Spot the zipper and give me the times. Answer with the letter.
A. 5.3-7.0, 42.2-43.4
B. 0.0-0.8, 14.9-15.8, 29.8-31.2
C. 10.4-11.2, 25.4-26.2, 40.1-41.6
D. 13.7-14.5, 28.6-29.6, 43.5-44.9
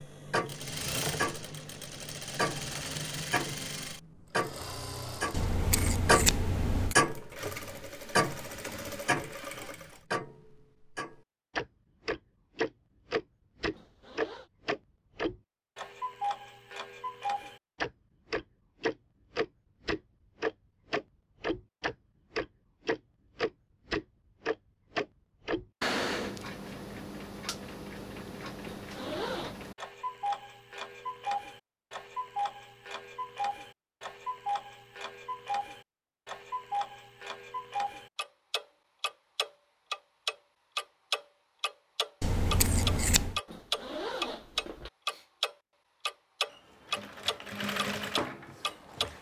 D.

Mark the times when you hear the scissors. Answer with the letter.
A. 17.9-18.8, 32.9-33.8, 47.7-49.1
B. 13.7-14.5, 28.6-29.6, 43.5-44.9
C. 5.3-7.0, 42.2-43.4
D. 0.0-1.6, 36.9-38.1
C.